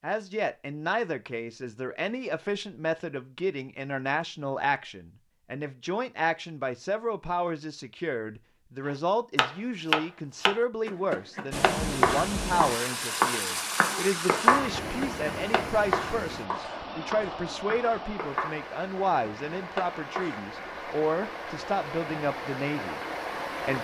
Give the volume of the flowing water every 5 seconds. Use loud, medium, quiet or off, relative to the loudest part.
off, off, loud, medium, loud.